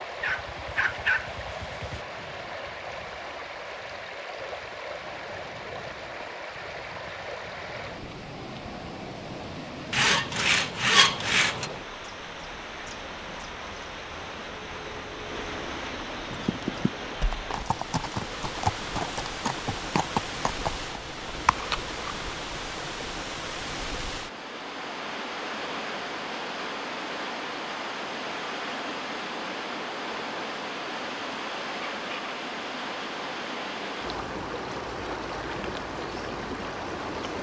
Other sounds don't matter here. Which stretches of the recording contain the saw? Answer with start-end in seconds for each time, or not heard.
9.9-11.7.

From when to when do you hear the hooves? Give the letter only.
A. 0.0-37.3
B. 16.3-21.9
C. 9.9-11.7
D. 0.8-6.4
B.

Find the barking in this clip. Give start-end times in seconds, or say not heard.
0.2-2.0.